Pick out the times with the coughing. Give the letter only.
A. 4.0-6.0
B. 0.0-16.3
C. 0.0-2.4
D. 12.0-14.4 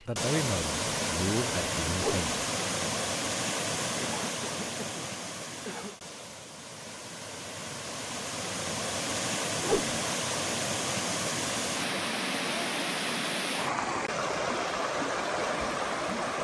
A.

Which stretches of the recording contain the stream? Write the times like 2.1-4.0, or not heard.
0.0-16.3.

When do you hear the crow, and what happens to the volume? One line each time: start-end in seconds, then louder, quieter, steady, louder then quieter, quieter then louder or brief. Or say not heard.
not heard.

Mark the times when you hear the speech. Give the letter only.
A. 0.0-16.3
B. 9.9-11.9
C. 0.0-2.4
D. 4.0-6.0
C.